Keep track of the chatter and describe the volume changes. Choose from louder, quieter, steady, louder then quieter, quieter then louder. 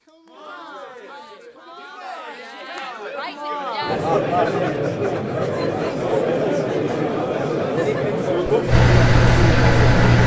louder.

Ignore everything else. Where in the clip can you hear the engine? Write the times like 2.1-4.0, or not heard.
8.7-10.2.